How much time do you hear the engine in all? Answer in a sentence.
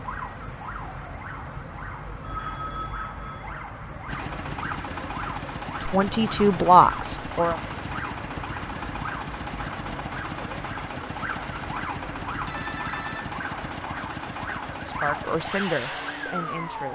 You can hear the engine for 13 seconds altogether.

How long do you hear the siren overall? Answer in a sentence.
The siren can be heard for 17 seconds in total.